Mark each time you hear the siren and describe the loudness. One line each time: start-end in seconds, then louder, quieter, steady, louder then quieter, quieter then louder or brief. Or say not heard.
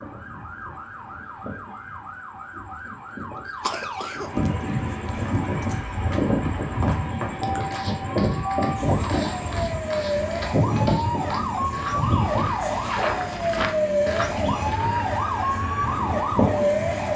0.0-17.1 louder.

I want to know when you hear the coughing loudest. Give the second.
4 s.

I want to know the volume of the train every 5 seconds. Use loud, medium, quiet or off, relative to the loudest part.
medium, loud, loud, loud.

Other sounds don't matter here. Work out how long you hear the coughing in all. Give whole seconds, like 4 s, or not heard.
2 s.